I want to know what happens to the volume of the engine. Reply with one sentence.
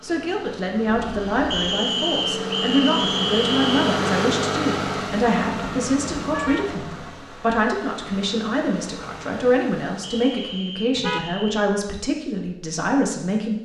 The volume of the engine goes up, then down.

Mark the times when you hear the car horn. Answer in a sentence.
The car horn can be heard from 0.8 to 1.6 s, from 5.2 to 6.8 s and from 10.9 to 11.3 s.